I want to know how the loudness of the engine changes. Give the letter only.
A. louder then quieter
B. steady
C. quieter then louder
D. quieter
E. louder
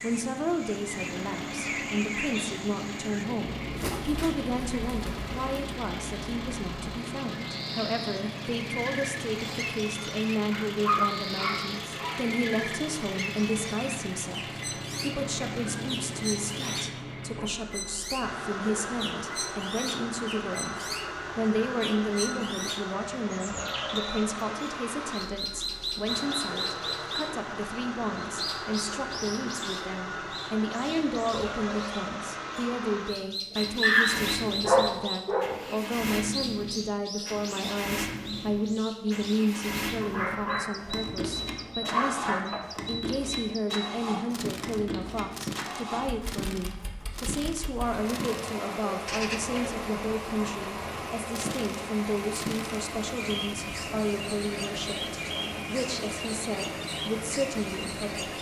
B.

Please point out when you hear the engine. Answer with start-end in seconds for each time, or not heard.
0.0-58.3.